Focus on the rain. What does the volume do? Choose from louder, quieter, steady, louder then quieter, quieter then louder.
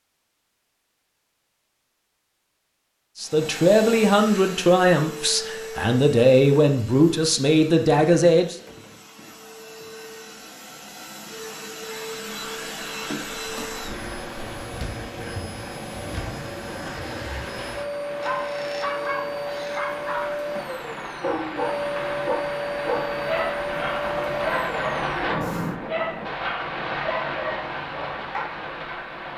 louder.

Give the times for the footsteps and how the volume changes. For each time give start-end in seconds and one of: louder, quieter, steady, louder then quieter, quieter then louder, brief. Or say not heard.
not heard.